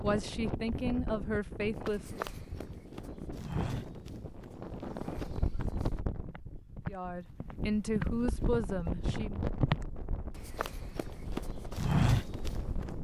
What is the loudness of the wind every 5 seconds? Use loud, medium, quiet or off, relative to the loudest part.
loud, loud, medium.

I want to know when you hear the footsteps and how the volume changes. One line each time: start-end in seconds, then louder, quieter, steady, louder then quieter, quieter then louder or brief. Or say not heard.
1.9-12.5 quieter then louder.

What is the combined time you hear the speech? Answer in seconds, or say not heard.
5 s.